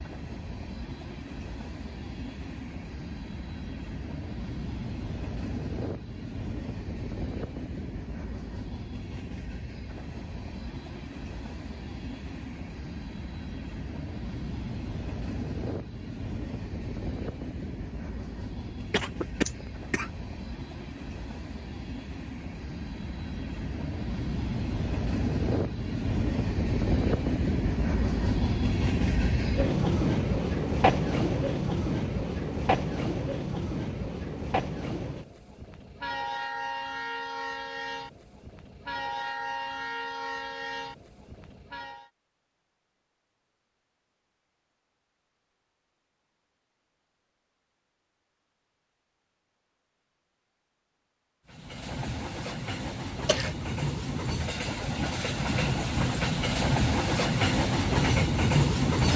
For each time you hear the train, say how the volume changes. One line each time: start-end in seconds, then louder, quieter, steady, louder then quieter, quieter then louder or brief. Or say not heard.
0.0-42.1 louder then quieter
51.5-59.1 louder.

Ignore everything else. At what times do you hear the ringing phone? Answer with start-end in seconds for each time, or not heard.
not heard.